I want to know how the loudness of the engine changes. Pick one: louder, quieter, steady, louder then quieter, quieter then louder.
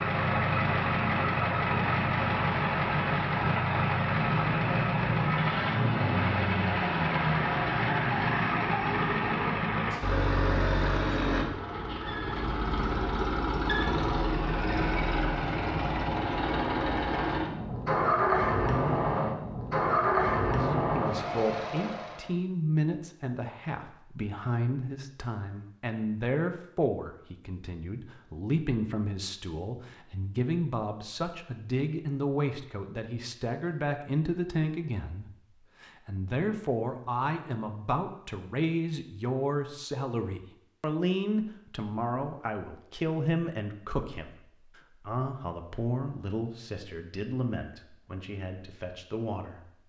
steady.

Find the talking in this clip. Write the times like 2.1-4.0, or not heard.
20.6-49.8.